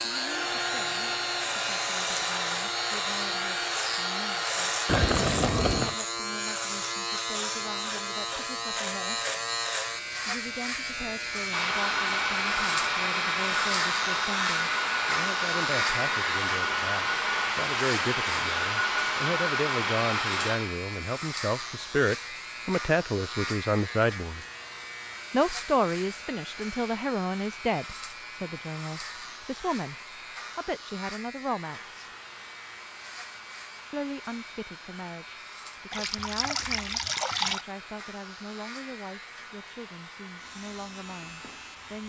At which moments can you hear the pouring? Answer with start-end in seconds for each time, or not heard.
4.8-6.0, 35.9-37.6.